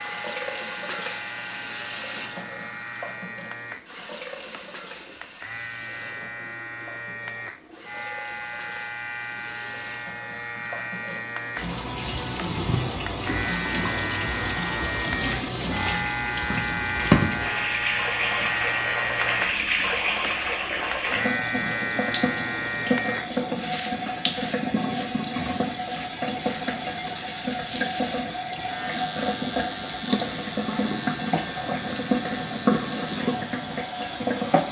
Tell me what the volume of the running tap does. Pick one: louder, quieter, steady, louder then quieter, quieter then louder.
louder.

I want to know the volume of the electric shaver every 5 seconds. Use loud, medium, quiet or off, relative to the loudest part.
medium, medium, loud, loud, loud, medium, medium.